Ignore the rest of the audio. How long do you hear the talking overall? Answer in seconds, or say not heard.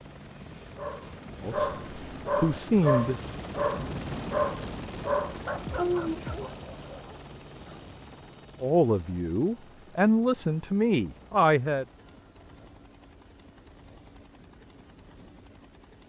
5 s.